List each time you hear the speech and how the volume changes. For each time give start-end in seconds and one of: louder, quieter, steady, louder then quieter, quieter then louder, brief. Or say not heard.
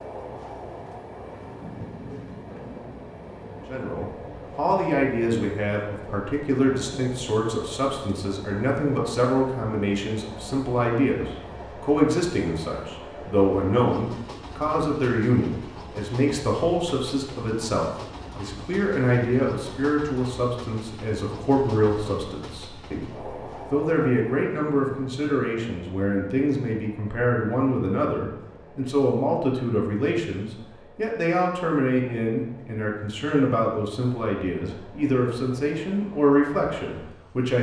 3.6-37.5 steady.